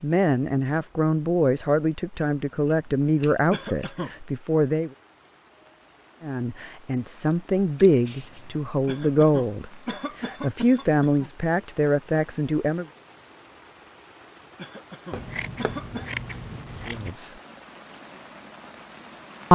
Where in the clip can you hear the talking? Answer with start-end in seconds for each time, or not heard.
0.0-4.9, 6.2-12.8, 16.9-17.4.